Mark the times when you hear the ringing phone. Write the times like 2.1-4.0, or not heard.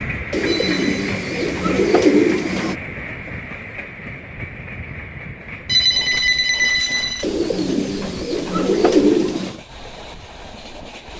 0.5-0.9, 5.7-7.2.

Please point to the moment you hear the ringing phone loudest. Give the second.
6 s.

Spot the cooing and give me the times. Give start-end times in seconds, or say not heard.
0.3-2.8, 7.2-9.6.